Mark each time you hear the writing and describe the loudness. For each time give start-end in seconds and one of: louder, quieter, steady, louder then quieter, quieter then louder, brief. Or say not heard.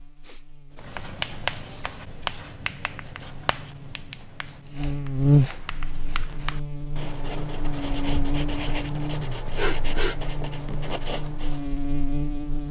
0.8-11.8 quieter then louder.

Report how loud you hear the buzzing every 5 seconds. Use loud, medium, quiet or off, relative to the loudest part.
quiet, loud, medium.